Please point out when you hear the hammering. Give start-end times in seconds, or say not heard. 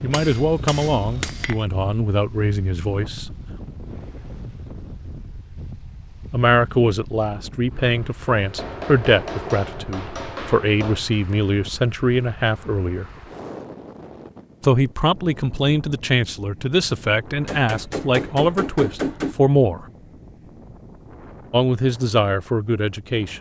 0.1-1.6, 8.3-11.0, 17.4-19.4.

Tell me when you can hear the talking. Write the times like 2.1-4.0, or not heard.
0.0-3.3, 6.3-13.1, 14.6-19.9, 21.5-23.3.